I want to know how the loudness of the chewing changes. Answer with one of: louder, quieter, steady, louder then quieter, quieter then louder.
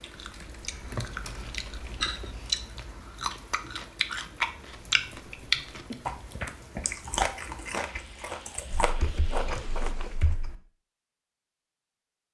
louder then quieter.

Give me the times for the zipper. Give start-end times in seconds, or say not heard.
8.9-10.2.